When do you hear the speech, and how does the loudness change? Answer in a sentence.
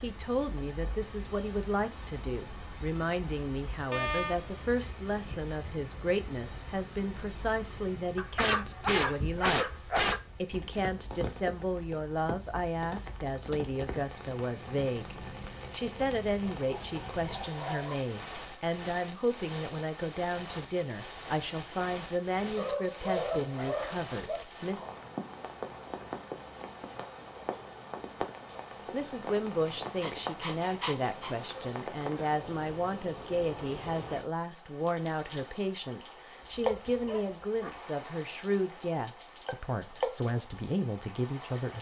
The speech can be heard from 0.0 to 24.9 s, at a steady volume; and from 28.9 to 41.7 s, at a steady volume.